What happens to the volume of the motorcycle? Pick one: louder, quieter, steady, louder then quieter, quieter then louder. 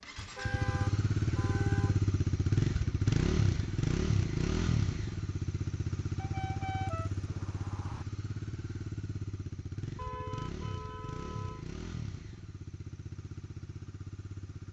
quieter.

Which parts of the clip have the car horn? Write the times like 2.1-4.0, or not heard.
0.1-2.0, 6.2-8.1, 9.9-11.7.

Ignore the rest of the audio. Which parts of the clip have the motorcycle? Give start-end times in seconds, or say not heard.
0.0-14.6.